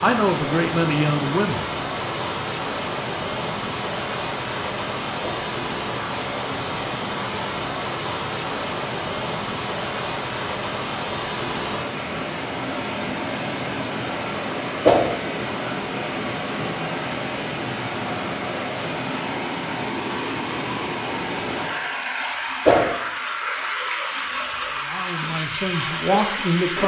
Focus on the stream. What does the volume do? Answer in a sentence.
The volume of the stream stays about the same.